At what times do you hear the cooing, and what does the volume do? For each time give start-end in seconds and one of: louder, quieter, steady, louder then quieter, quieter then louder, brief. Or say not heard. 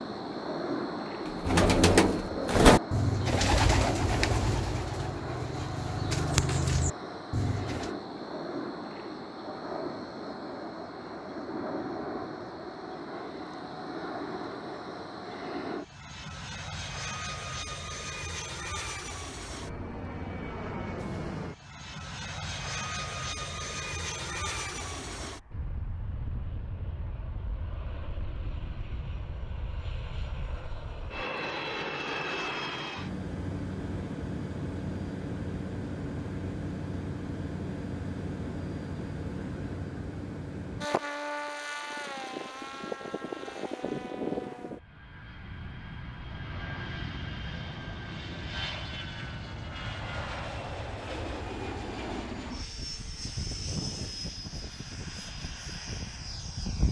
1.2-7.9 quieter then louder.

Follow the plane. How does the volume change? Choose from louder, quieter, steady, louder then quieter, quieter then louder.
steady.